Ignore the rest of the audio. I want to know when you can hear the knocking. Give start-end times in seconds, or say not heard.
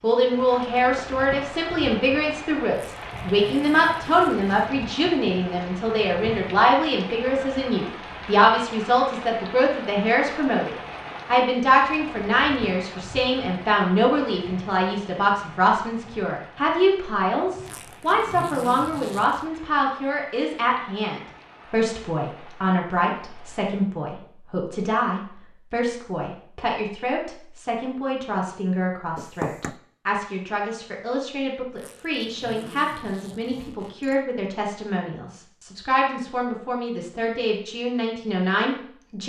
29.1-29.8.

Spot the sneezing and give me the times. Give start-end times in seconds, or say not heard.
not heard.